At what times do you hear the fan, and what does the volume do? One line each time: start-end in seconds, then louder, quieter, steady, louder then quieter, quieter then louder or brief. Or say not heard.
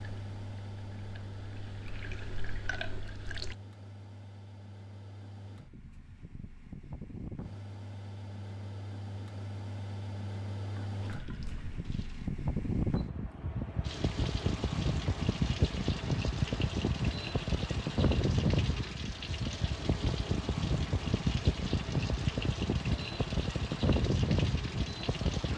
0.0-25.5 louder.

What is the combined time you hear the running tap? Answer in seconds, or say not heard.
17 s.